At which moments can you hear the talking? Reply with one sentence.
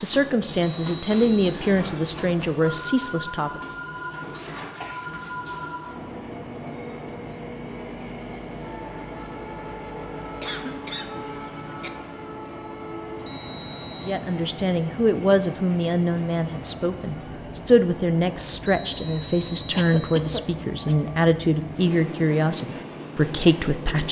You can hear the talking from 0.0 to 3.6 s and from 14.0 to 24.0 s.